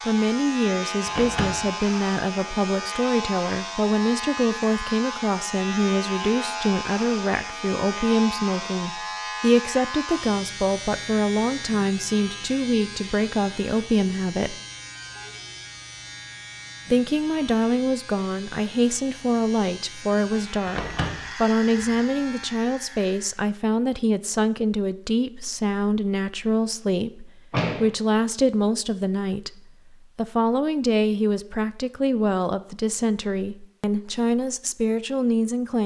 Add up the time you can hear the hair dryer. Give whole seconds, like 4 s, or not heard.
not heard.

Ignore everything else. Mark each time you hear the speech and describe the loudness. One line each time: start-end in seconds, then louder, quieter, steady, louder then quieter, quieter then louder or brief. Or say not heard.
0.1-14.6 steady
16.9-35.8 steady.